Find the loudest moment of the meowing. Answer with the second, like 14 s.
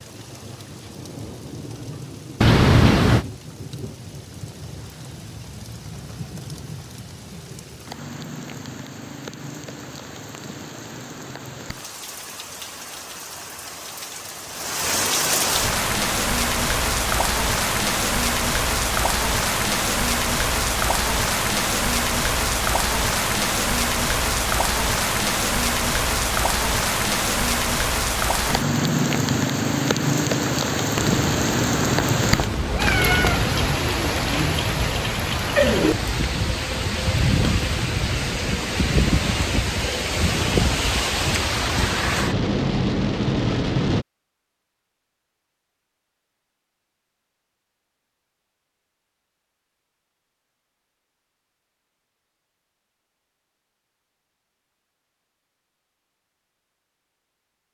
3 s.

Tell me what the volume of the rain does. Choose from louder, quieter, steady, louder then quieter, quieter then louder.
louder.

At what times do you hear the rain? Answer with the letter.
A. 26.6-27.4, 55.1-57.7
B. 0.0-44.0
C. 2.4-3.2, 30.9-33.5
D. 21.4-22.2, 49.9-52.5
B.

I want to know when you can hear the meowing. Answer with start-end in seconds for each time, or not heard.
2.4-3.2, 30.9-33.5.